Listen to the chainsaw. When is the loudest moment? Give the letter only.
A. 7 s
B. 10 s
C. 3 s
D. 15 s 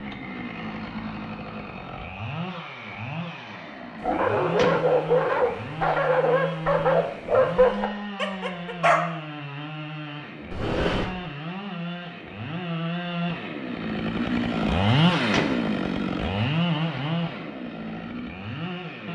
D.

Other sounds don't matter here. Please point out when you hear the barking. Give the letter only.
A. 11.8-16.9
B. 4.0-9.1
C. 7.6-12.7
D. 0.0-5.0
B.